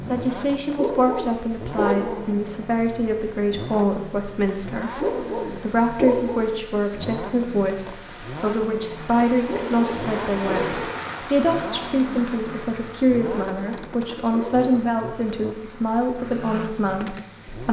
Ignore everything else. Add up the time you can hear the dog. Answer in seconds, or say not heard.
6 s.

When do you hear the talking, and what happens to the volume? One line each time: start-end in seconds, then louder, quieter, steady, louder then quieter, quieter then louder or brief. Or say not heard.
0.1-17.6 steady.